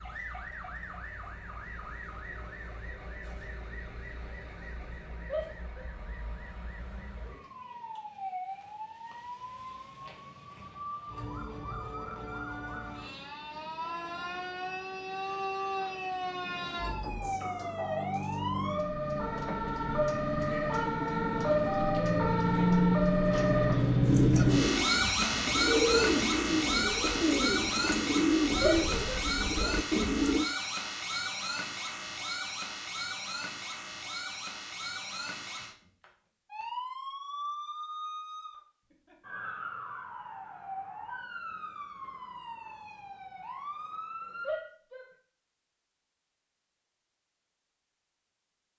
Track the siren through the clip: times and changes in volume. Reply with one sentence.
The siren can be heard from 0.0 to 44.7 s, getting louder then quieter.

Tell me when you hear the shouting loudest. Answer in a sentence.
The volume of the shouting peaks at 29 seconds.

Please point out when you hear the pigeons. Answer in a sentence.
The pigeons can be heard from 24.0 to 30.4 s.